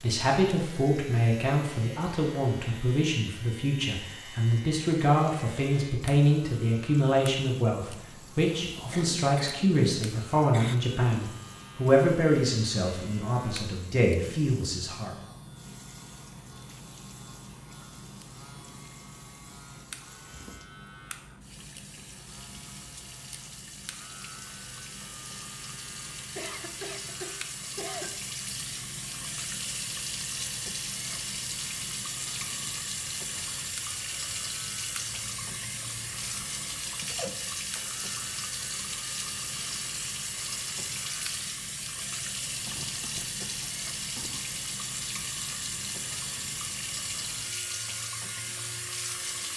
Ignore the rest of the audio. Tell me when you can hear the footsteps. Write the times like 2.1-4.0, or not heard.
not heard.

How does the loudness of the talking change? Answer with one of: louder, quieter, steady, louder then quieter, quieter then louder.
steady.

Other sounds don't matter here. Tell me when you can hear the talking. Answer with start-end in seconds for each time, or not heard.
0.0-15.1.